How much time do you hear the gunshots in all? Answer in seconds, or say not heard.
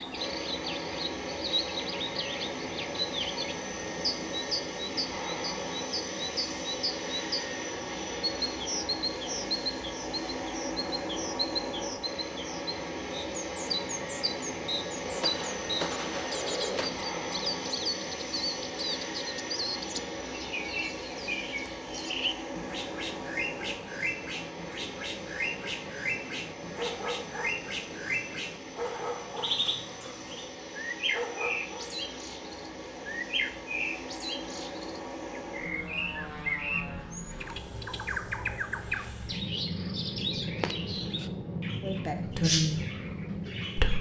2 s.